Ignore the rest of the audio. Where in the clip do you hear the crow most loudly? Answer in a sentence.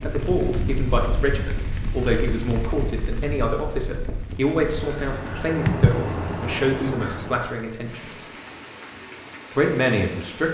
The volume of the crow peaks at 6 seconds.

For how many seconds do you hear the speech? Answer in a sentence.
The speech can be heard for 9 seconds in total.